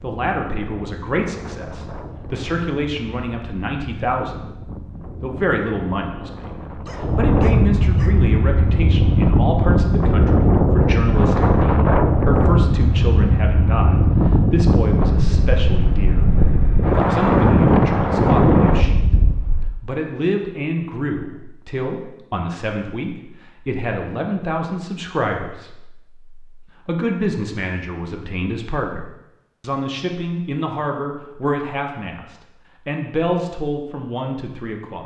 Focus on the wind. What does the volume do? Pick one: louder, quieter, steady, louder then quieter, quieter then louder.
louder.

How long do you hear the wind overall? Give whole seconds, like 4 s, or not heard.
20 s.